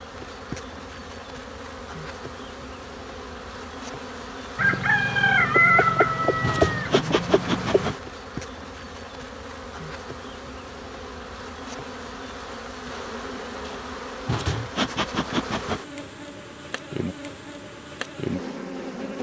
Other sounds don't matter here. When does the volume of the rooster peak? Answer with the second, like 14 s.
6 s.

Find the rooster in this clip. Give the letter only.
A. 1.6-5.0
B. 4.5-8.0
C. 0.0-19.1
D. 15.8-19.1
B.